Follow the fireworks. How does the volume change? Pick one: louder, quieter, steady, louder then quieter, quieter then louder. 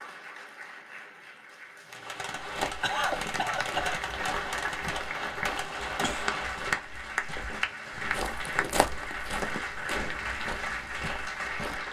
quieter.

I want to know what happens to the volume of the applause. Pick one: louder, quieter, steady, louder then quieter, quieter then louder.
louder.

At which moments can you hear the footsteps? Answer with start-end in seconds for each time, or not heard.
2.4-11.8.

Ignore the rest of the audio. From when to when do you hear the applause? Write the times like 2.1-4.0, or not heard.
0.0-11.8.